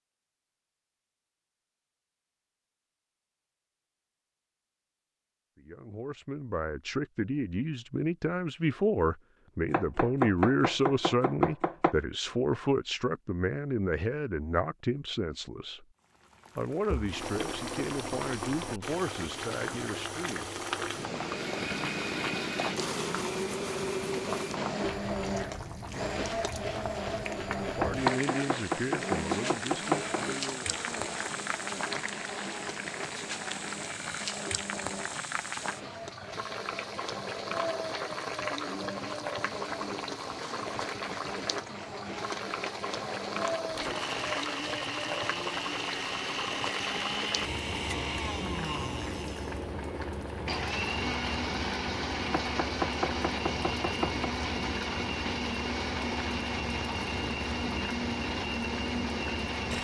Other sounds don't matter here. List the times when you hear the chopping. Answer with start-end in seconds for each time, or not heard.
9.7-11.9, 27.8-30.2, 52.3-54.2.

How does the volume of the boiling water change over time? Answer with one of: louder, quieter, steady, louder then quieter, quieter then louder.
steady.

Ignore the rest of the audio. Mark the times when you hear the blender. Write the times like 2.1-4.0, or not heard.
21.1-59.7.